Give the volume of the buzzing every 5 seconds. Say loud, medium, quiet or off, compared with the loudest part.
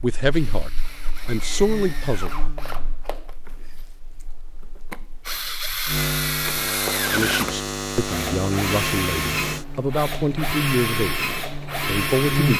quiet, loud, loud.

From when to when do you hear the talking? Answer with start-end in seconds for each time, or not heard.
0.0-2.3, 7.1-12.5.